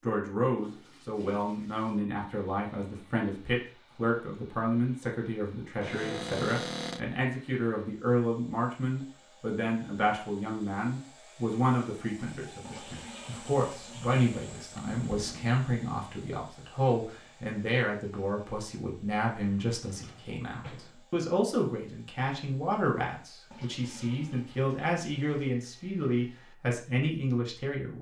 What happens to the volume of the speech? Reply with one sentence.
The volume of the speech stays about the same.